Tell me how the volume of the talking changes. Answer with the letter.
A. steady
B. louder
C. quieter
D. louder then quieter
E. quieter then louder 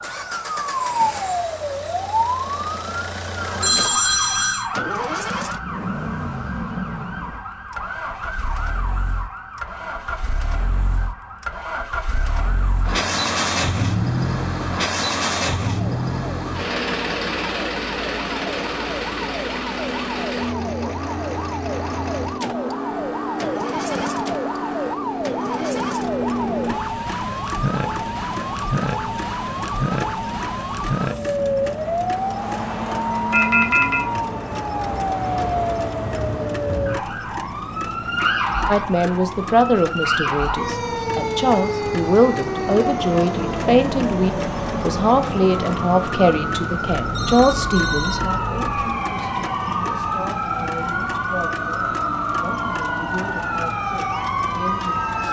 C.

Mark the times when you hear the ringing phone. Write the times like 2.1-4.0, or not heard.
3.6-4.7, 33.3-34.0, 47.1-48.9.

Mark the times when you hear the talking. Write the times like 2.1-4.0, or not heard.
38.6-55.0.